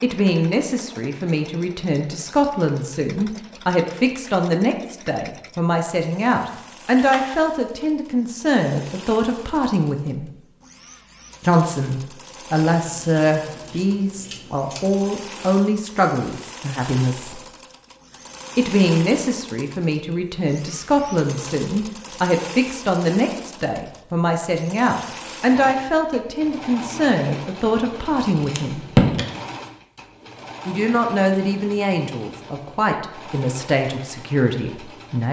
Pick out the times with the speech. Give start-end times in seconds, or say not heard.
0.0-10.3, 11.4-17.4, 18.6-28.9, 30.6-35.2.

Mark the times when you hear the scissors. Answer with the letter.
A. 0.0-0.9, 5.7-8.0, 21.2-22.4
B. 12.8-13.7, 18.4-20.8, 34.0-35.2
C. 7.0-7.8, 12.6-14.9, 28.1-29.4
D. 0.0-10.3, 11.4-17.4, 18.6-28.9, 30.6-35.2
C.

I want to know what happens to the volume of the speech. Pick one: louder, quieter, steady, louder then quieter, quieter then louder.
steady.